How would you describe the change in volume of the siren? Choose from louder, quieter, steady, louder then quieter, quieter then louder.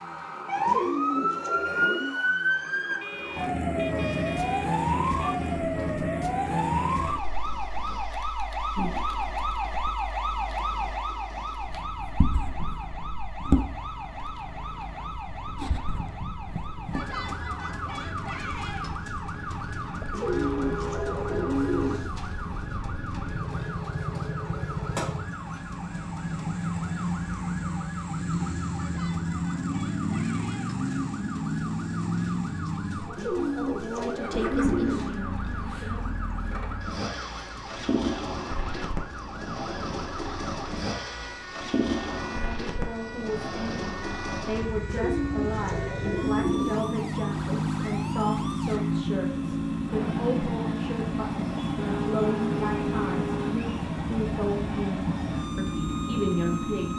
quieter.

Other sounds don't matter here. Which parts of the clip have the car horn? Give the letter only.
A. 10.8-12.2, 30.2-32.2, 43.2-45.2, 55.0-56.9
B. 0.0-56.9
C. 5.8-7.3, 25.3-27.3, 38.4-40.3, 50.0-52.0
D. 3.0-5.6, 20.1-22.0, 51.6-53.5
D.